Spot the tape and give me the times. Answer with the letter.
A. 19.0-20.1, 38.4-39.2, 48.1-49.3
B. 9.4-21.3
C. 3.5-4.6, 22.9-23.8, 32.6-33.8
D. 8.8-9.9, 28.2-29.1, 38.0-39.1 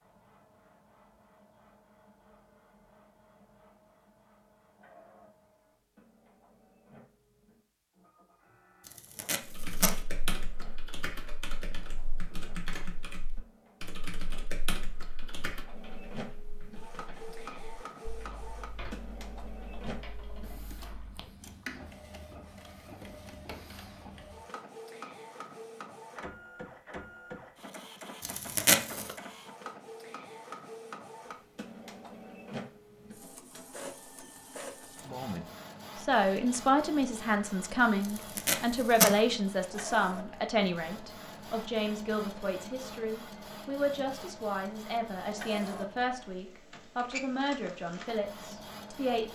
D.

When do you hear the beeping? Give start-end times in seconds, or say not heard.
not heard.